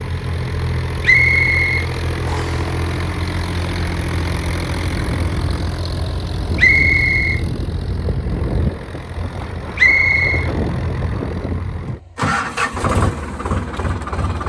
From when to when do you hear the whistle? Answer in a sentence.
The whistle can be heard from 1.0 to 2.6 s, from 6.5 to 7.4 s and from 9.8 to 10.5 s.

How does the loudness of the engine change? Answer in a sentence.
The volume of the engine stays about the same.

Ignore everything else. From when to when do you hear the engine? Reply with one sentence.
The engine can be heard from 0.0 to 14.4 s.